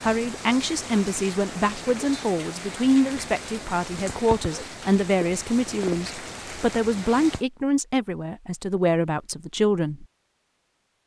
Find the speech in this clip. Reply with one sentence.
The speech can be heard from 0.0 to 10.1 s.